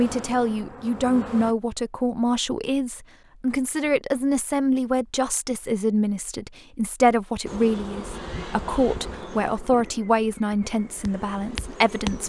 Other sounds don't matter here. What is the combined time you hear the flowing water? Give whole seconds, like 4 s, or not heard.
not heard.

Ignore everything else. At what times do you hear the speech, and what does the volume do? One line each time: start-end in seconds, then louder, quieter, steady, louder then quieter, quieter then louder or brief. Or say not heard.
0.0-12.2 steady.